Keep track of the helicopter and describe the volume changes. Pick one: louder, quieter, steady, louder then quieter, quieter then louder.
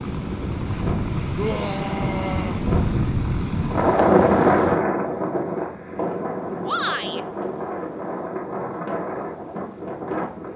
quieter.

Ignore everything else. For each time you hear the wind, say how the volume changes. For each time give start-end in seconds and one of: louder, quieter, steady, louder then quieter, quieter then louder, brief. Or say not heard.
0.0-10.5 louder then quieter.